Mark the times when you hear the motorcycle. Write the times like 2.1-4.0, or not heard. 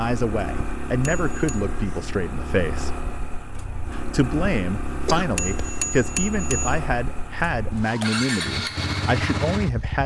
0.0-10.0.